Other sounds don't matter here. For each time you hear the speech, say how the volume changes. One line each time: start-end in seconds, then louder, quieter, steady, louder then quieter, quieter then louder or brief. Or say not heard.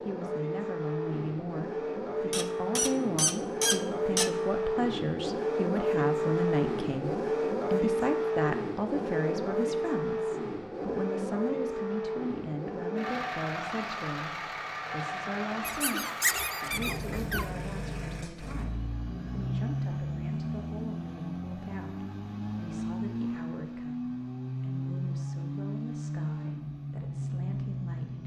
0.1-28.2 quieter.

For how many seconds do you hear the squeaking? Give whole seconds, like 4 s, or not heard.
4 s.